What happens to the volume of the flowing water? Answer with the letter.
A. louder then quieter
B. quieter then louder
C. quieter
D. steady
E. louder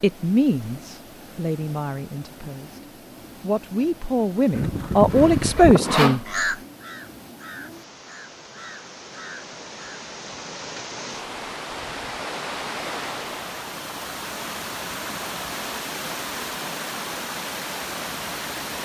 E.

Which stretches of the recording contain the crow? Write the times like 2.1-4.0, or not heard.
4.5-10.0.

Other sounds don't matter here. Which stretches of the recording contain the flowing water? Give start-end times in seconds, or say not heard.
0.0-18.8.